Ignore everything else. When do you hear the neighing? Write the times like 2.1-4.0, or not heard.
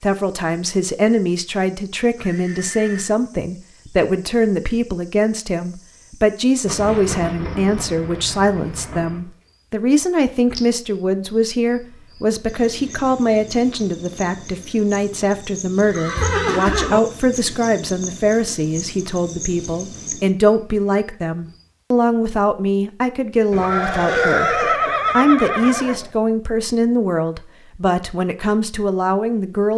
2.1-3.1, 15.8-17.0, 23.5-26.1.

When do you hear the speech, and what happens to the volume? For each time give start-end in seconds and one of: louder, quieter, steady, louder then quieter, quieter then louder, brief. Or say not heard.
0.0-29.7 steady.